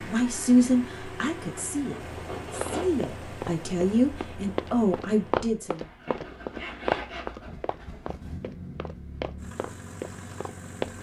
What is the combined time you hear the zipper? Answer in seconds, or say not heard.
3 s.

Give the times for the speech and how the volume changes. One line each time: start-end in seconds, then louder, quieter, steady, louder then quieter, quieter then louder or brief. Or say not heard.
0.0-5.8 quieter then louder.